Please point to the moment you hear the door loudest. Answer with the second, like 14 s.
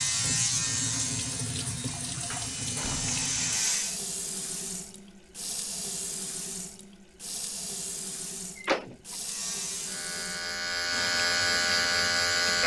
9 s.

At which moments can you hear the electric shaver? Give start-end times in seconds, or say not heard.
0.0-4.0, 9.2-12.6.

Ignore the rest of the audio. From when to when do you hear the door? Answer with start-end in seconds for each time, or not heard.
2.3-3.2, 8.6-9.2.